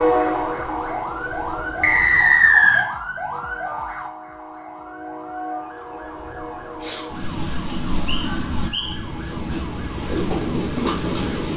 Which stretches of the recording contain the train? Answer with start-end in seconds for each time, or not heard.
0.0-11.5.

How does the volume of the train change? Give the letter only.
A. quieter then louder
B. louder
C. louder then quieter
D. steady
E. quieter
A.